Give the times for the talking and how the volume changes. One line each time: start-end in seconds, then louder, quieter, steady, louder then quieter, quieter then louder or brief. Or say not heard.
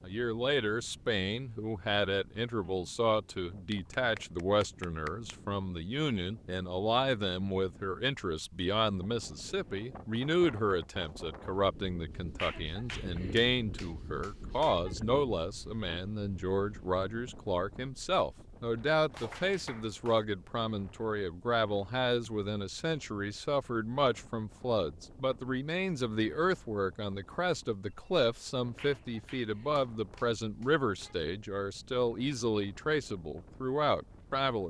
0.0-34.6 steady.